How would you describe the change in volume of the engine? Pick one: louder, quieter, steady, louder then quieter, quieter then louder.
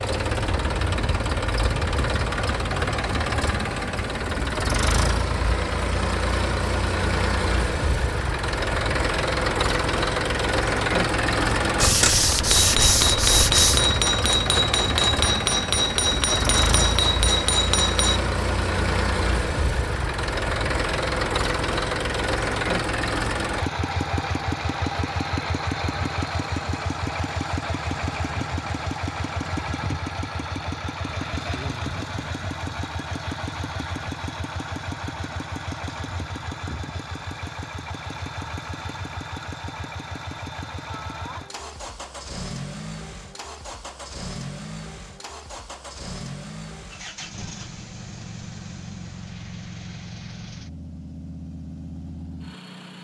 quieter.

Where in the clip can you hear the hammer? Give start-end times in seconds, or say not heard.
11.8-18.2.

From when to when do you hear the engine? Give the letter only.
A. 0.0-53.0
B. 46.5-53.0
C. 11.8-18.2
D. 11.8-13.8
A.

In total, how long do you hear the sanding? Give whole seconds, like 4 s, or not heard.
2 s.